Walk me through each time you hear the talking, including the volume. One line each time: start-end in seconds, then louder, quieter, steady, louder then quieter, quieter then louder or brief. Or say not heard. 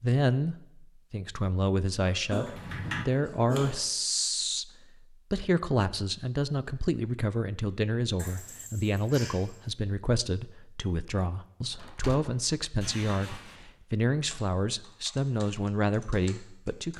0.0-16.9 steady.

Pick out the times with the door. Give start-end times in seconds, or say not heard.
2.5-3.0, 11.8-12.4.